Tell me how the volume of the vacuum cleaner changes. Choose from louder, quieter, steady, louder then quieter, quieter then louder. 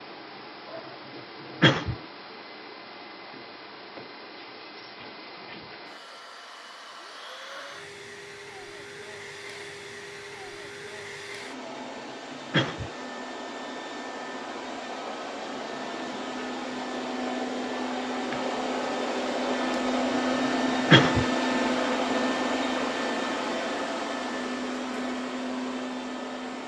louder.